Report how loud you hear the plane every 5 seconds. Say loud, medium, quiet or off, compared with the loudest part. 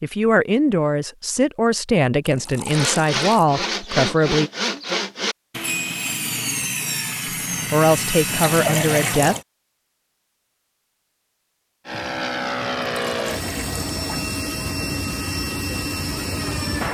off, off, loud, loud.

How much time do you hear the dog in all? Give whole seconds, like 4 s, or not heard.
not heard.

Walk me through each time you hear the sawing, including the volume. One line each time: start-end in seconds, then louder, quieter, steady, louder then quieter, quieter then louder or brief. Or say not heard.
2.6-9.4 steady.